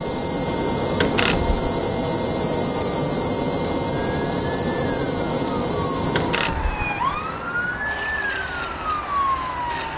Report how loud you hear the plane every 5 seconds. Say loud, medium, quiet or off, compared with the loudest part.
loud, medium.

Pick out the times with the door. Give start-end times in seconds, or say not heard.
1.0-1.6, 6.2-6.8.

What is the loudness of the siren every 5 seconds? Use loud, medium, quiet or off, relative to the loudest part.
medium, loud.